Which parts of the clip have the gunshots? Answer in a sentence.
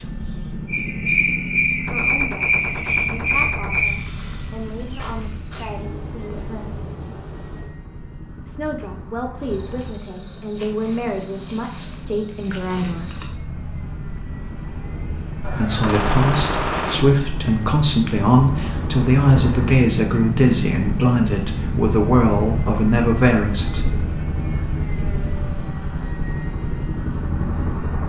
The gunshots can be heard from 1.9 to 3.9 s and from 15.4 to 17.1 s.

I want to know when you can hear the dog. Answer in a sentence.
The dog can't be heard in this clip.